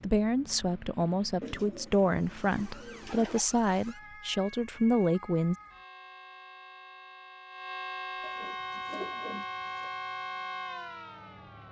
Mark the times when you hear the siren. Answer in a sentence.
The siren can be heard from 2.0 to 11.6 s.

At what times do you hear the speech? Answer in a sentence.
You can hear the speech from 0.0 to 5.5 s.